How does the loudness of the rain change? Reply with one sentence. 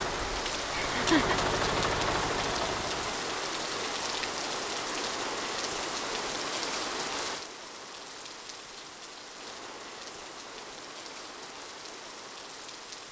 The loudness of the rain goes down.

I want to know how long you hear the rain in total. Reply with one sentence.
The rain can be heard for 13 seconds in total.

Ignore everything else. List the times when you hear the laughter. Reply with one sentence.
You can hear the laughter from 0.7 to 1.4 s.